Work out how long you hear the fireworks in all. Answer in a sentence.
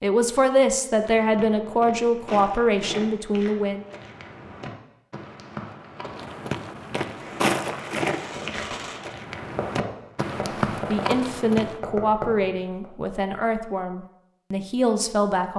The fireworks can be heard for 6 seconds in total.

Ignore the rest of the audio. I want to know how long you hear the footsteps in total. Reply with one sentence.
You can hear the footsteps for 11 seconds altogether.